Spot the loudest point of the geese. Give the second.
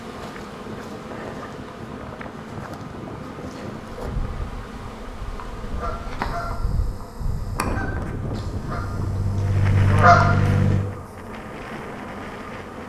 10 s.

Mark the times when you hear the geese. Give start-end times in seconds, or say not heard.
5.6-10.8.